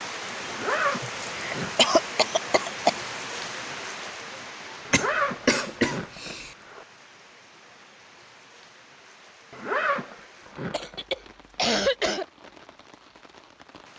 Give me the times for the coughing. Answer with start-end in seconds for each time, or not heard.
1.0-3.0, 4.9-6.5, 10.7-12.2.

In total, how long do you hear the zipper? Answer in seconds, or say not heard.
5 s.